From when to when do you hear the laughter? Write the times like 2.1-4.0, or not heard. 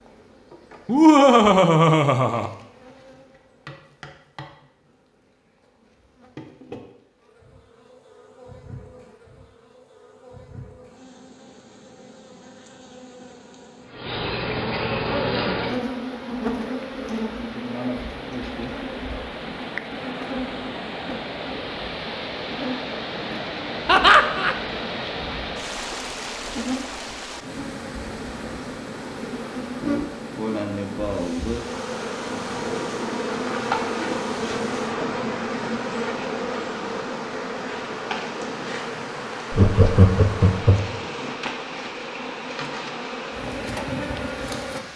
0.8-2.5, 23.9-24.6, 39.5-40.9.